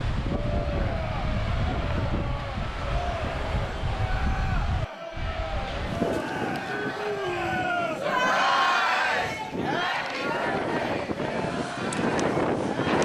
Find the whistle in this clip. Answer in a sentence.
You can't hear the whistle here.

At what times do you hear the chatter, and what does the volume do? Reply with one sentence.
You can hear the chatter from 0.1 to 12.9 s, getting louder then quieter.